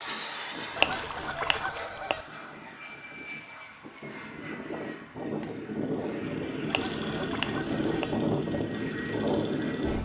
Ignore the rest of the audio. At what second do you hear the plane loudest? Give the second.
8 s.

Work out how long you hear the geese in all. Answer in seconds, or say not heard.
3 s.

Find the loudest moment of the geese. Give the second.
1 s.